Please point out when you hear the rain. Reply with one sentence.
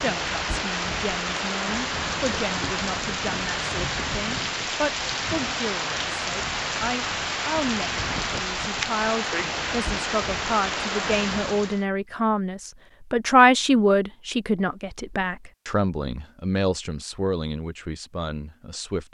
You can hear the rain from 0.0 to 11.8 s.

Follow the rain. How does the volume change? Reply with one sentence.
The volume of the rain stays about the same.